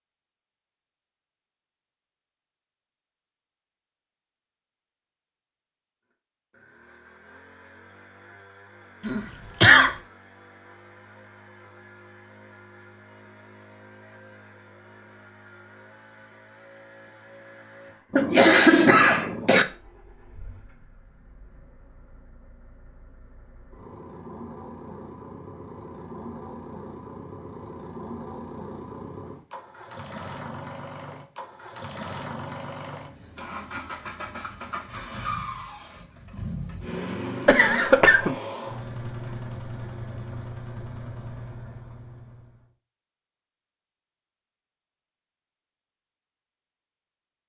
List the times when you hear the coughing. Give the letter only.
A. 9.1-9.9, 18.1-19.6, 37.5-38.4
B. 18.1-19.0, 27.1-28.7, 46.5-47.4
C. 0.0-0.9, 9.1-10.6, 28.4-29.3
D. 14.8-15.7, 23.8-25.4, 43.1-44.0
A.